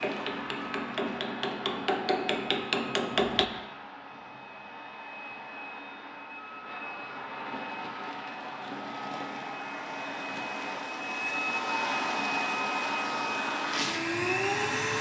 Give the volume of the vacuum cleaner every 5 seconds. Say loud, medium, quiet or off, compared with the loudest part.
medium, medium, loud.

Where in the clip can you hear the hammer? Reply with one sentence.
You can hear the hammer from 0.0 to 3.5 s.